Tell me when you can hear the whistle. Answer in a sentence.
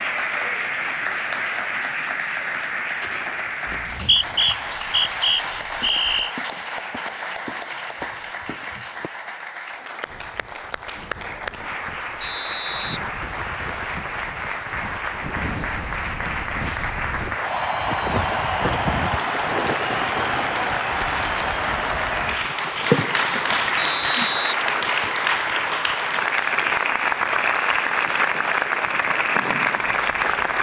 The whistle can be heard from 3.7 to 6.3 s, from 12.2 to 13.7 s and from 23.8 to 25.1 s.